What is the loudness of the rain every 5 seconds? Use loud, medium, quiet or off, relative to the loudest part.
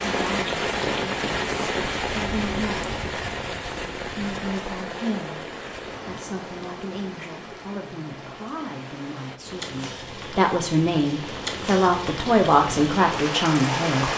loud, medium, loud.